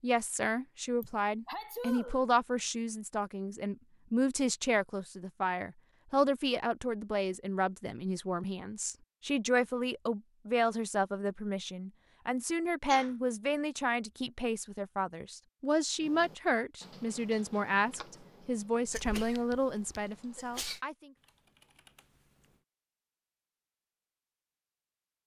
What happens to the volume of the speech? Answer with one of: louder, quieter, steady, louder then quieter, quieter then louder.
steady.